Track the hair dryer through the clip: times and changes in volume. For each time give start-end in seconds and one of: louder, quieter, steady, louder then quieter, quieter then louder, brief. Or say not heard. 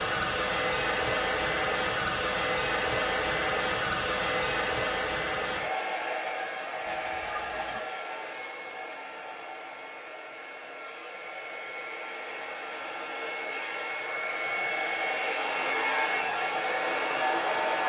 0.0-17.8 quieter then louder.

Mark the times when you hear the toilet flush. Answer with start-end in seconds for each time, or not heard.
6.8-7.8.